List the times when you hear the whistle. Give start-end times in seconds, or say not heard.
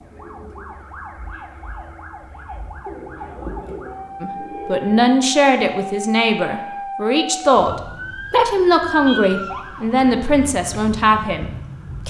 not heard.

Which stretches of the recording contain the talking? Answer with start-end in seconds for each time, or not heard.
4.2-12.0.